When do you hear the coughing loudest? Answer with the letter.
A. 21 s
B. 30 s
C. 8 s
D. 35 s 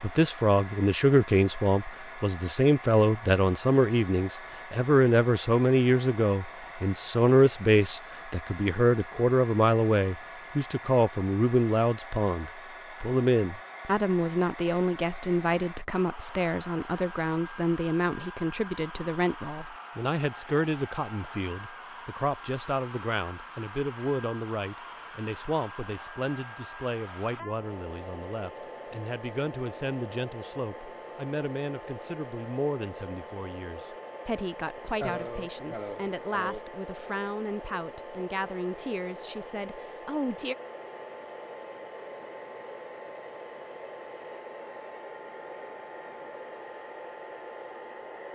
D.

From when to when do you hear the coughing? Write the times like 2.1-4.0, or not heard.
35.0-36.6.